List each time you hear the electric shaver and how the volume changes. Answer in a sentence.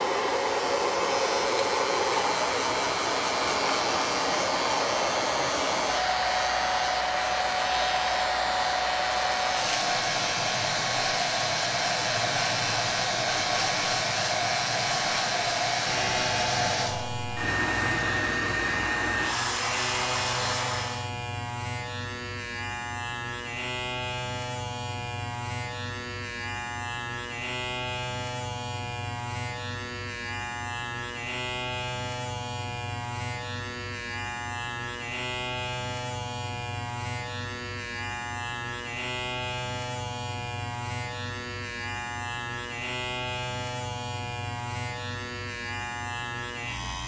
You can hear the electric shaver from 0.2 to 47.0 s, at a steady volume.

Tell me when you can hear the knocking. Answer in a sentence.
You can't hear the knocking here.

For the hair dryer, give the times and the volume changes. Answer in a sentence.
The hair dryer can be heard from 0.0 to 21.1 s, at a steady volume.